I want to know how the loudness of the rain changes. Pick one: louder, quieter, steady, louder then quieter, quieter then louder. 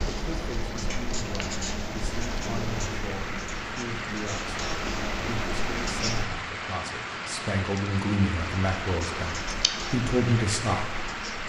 louder.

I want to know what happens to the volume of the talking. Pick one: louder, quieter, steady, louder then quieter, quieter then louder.
louder.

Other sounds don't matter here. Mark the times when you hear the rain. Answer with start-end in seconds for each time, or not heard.
0.0-11.4.